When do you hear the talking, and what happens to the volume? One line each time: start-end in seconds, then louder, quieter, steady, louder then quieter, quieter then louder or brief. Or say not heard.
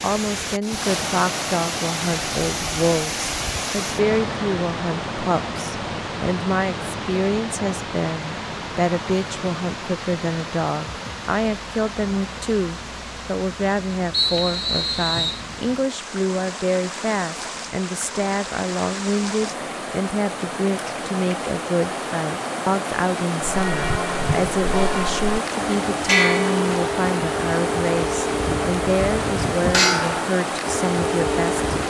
0.0-31.8 steady.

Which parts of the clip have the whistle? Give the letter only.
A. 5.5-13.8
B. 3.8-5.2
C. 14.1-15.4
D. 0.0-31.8
C.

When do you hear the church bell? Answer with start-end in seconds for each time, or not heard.
23.5-31.8.